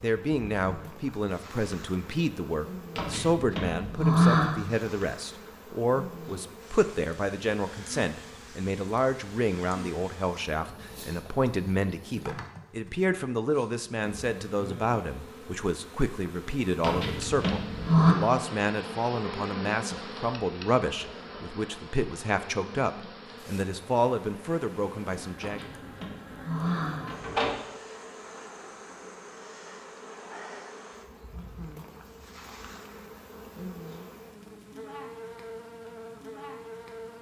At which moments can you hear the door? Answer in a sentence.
You can hear the door from 3.0 to 4.5 s, from 16.8 to 18.1 s and from 25.4 to 27.5 s.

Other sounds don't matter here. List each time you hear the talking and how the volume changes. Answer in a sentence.
The talking can be heard from 0.0 to 25.6 s, at a steady volume.